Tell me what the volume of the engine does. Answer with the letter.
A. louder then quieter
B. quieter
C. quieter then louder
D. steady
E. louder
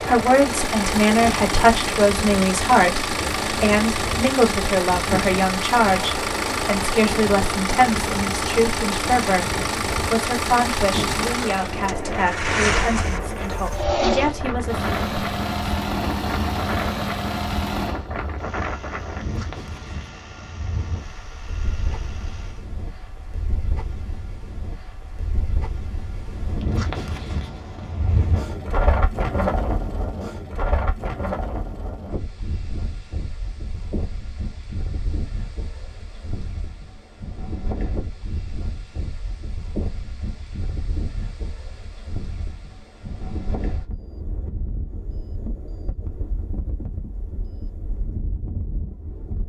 B.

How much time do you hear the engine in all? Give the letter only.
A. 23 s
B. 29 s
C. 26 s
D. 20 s
A.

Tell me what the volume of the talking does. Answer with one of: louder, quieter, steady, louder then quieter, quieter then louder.
quieter.